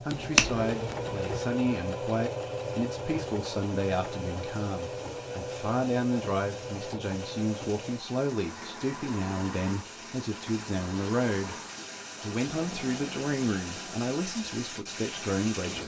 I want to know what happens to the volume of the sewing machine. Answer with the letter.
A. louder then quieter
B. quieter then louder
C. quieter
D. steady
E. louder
C.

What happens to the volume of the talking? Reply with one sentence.
The loudness of the talking stays about the same.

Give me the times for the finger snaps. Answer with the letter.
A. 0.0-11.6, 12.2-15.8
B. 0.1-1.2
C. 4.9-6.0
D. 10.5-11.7
B.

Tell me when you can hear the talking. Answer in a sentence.
You can hear the talking from 0.0 to 11.6 s and from 12.2 to 15.8 s.